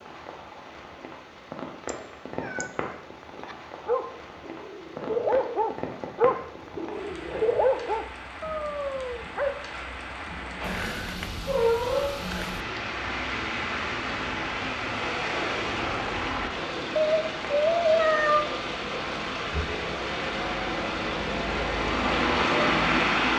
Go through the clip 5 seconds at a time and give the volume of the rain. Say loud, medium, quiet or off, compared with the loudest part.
quiet, quiet, medium, medium, loud.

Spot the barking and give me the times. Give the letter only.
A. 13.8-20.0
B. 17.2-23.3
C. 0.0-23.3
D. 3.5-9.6
D.